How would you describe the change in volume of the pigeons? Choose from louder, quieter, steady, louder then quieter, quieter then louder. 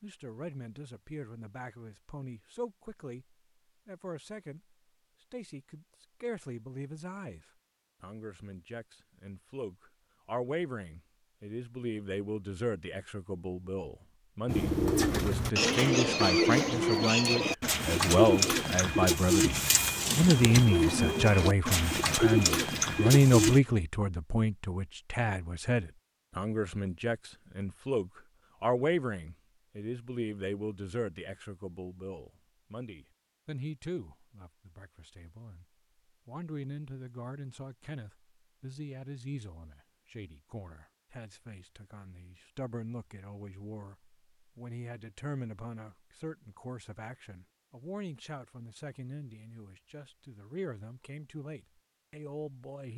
steady.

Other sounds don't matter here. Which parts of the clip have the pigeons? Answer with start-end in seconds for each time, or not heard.
14.4-23.6.